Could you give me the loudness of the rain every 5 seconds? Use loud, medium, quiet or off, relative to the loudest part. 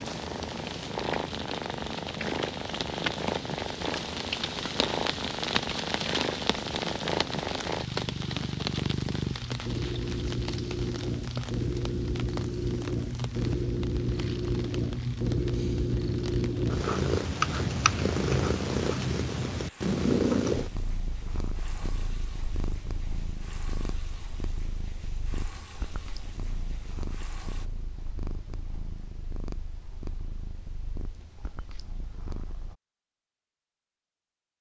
loud, loud, medium, quiet, quiet, quiet, off.